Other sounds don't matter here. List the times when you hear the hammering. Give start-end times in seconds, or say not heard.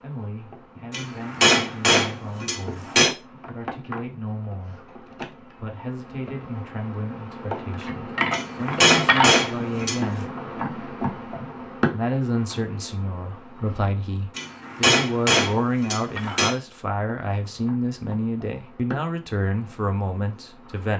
0.9-3.1, 8.3-10.2, 14.3-16.6.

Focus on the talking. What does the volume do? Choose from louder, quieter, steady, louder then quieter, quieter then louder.
louder.